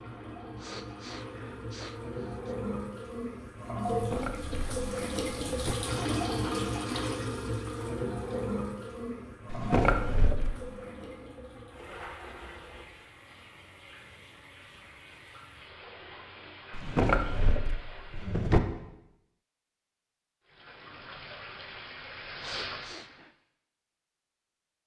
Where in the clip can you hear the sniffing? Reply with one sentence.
You can hear the sniffing from 0.6 to 2.5 s and from 22.4 to 23.2 s.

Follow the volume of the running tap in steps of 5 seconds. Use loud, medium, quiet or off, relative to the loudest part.
loud, loud, quiet, quiet, medium.